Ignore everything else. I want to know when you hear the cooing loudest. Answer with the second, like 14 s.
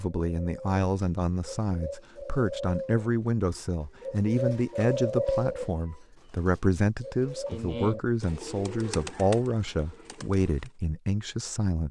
5 s.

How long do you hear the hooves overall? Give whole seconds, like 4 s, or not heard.
not heard.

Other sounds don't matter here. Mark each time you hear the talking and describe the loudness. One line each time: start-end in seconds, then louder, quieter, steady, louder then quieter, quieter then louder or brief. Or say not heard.
0.0-11.8 steady.